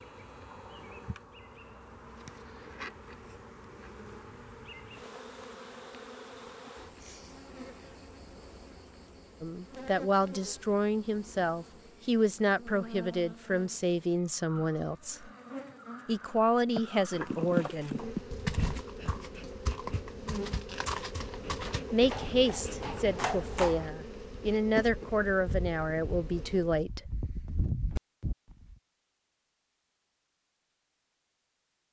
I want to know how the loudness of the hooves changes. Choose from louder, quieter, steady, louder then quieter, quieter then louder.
quieter.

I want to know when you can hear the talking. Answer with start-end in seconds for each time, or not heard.
9.4-15.3, 16.1-18.1, 21.9-27.1.